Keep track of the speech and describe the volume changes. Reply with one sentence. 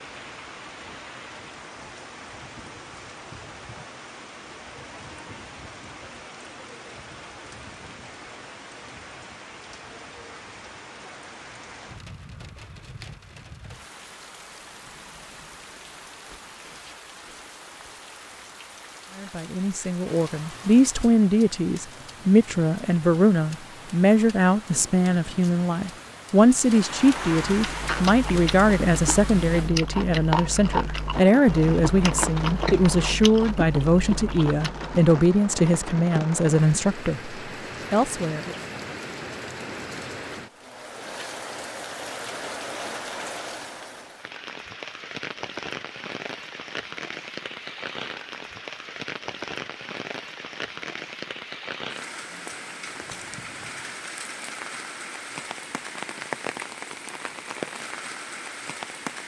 The volume of the speech stays about the same.